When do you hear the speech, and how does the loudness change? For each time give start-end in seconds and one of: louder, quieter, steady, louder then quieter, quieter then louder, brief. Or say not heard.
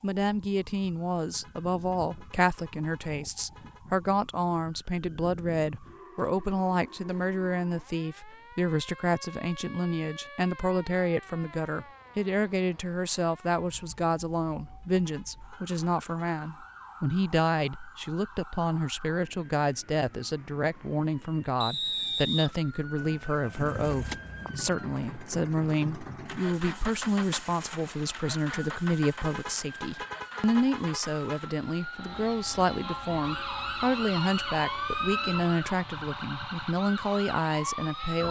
0.0-38.2 steady.